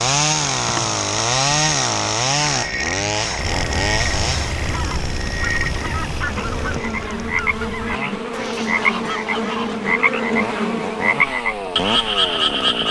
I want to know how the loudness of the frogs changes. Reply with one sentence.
The volume of the frogs goes up.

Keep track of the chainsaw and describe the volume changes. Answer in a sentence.
The loudness of the chainsaw goes down, then up.